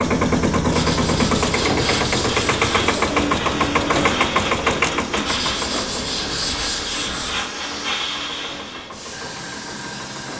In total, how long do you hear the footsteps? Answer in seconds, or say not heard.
not heard.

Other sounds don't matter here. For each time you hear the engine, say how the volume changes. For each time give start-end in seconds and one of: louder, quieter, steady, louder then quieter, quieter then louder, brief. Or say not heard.
0.0-10.3 quieter.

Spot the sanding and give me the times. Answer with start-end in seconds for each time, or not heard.
0.7-3.1, 5.2-7.5.